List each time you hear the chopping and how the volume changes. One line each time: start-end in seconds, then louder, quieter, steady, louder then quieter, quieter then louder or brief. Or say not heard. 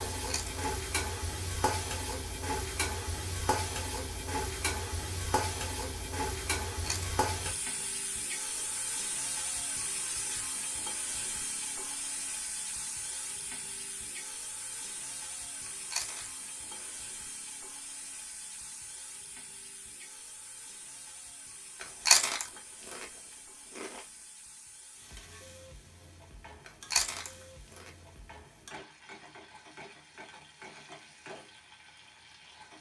not heard.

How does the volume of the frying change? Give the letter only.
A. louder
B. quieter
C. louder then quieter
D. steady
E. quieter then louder
B.